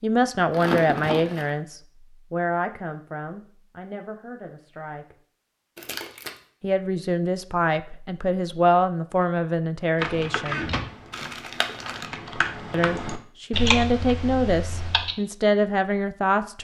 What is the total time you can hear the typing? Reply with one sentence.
You can hear the typing for 5 seconds altogether.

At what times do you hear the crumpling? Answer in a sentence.
You can hear the crumpling from 0.5 to 1.5 s, from 5.8 to 6.3 s and from 11.1 to 12.1 s.